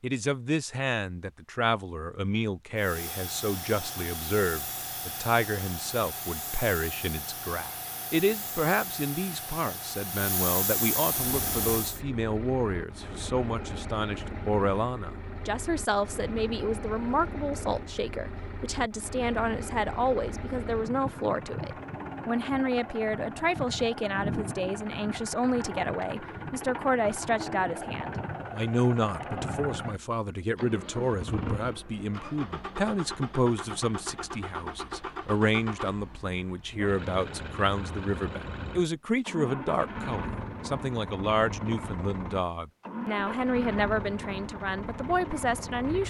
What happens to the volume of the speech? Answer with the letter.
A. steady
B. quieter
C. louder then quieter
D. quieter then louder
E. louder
A.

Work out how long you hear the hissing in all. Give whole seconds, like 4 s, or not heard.
9 s.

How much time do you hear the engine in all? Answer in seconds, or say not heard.
35 s.